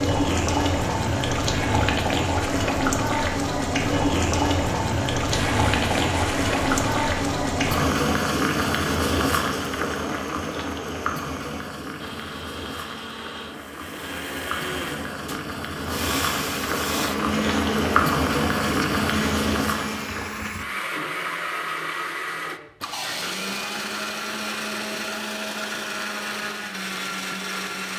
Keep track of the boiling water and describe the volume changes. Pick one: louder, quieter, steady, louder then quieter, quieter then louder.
quieter then louder.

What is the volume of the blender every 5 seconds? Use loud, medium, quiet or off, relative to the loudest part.
off, loud, medium, loud, loud, loud.